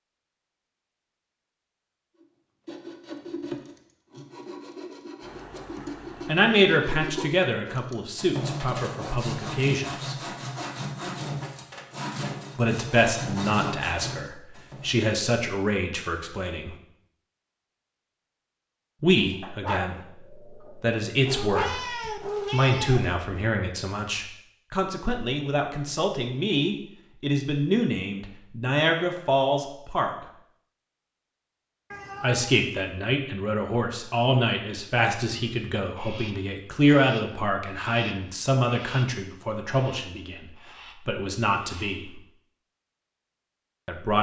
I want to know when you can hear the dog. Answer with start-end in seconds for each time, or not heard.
19.4-21.8.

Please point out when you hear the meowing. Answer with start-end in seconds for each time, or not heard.
5.2-6.5, 21.2-23.1, 31.9-32.6.